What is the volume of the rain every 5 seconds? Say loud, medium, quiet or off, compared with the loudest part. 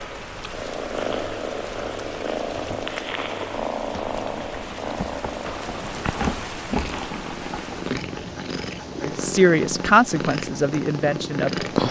medium, loud, off.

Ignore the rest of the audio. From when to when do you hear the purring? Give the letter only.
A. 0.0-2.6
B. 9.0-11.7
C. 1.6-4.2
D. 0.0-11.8
D.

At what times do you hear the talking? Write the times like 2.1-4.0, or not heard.
9.0-11.7.